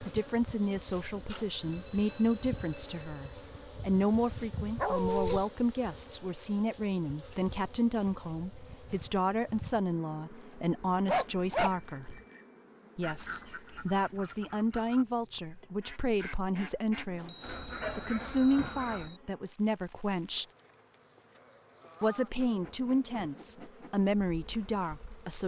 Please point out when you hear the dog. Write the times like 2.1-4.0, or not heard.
4.8-5.5, 10.8-12.2, 17.2-18.8.